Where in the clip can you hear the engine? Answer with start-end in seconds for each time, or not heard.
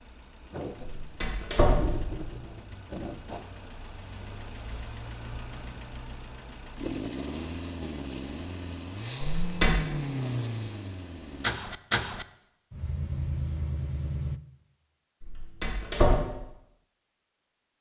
0.0-14.4.